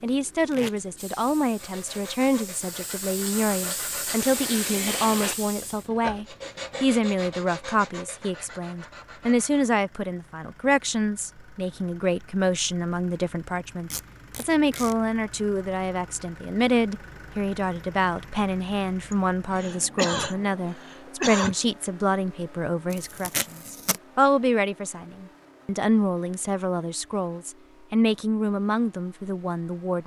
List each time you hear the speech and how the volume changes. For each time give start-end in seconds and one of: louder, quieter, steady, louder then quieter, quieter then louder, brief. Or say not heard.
0.0-30.0 steady.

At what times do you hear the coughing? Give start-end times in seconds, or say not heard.
19.1-21.6.